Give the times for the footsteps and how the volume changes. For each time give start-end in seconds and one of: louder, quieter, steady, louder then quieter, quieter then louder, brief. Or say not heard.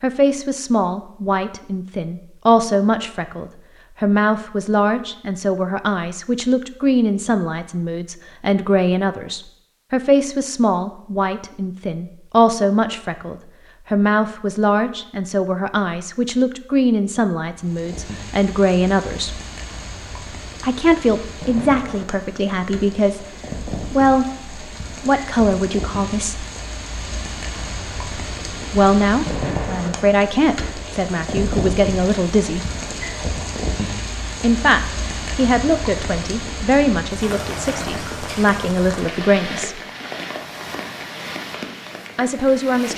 not heard.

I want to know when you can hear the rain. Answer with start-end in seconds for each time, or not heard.
17.6-42.9.